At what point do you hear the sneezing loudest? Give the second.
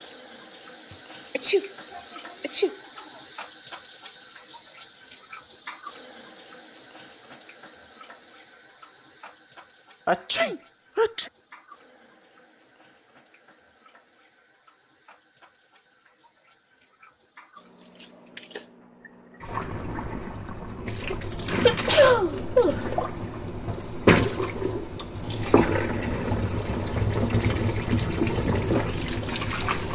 22 s.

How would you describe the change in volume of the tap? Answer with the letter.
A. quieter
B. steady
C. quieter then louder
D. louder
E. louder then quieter
C.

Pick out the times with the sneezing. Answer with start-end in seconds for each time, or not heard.
1.4-2.8, 10.1-11.3, 21.6-22.9.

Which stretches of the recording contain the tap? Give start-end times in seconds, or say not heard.
0.0-29.9.